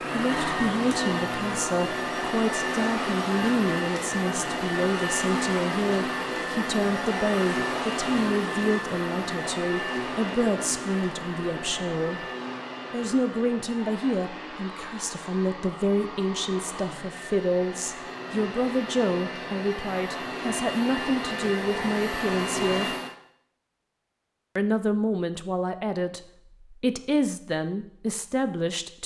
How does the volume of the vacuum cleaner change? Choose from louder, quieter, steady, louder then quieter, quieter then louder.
quieter then louder.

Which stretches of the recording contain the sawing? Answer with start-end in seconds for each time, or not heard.
not heard.